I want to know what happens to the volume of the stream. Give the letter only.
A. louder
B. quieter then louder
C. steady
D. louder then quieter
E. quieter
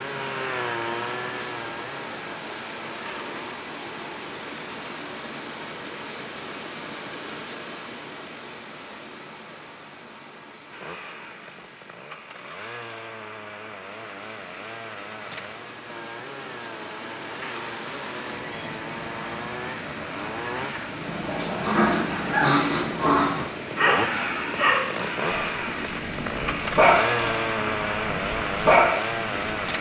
B.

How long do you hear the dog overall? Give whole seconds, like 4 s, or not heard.
9 s.